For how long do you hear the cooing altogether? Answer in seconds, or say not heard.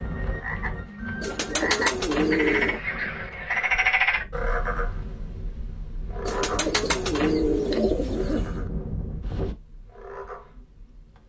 4 s.